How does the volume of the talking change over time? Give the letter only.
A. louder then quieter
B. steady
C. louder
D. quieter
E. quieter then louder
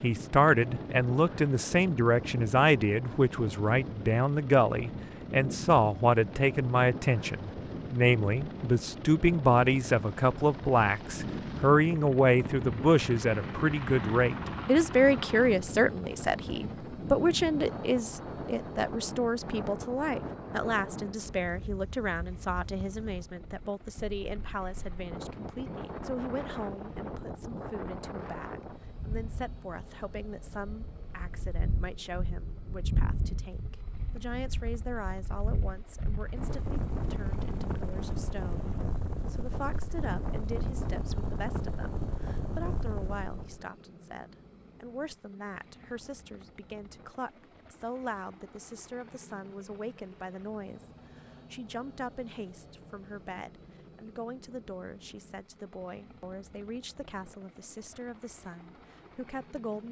D.